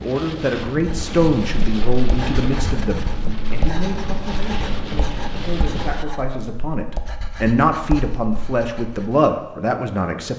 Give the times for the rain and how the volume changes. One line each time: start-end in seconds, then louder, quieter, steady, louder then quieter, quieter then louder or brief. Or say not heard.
0.0-6.0 steady.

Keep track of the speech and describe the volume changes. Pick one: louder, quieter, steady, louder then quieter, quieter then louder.
quieter then louder.